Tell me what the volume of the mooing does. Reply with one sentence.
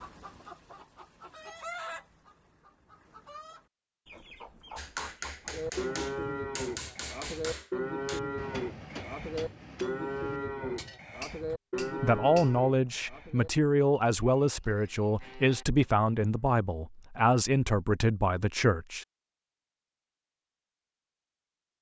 The loudness of the mooing goes down.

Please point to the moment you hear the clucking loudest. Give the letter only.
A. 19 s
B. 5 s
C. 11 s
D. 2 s
D.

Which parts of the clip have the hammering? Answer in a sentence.
You can hear the hammering from 4.8 to 12.6 s.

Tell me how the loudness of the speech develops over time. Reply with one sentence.
The volume of the speech stays about the same.